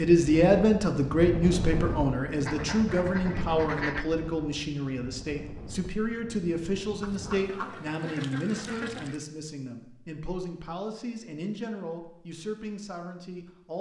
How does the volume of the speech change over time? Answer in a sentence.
The loudness of the speech goes down.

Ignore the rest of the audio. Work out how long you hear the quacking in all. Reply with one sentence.
You can hear the quacking for 4 seconds altogether.